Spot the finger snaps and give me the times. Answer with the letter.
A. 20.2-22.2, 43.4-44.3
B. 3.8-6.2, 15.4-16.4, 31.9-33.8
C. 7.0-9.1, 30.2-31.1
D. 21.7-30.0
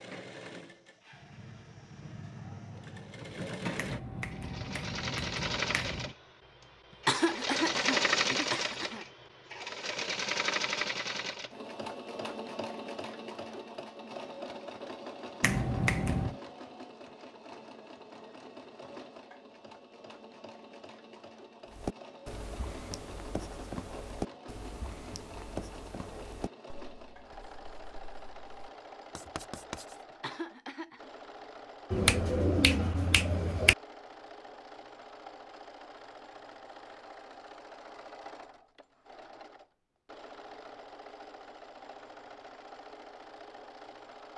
B.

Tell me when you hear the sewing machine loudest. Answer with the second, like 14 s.
8 s.